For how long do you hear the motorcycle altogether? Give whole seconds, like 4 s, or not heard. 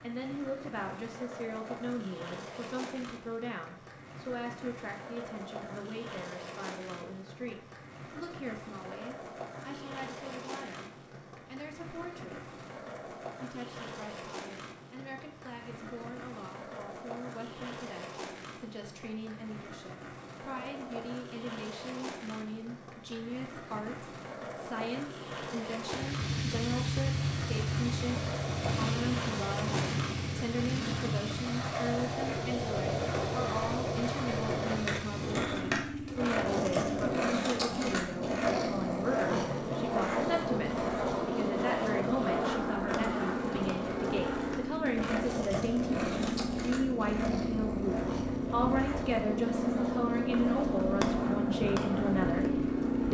27 s.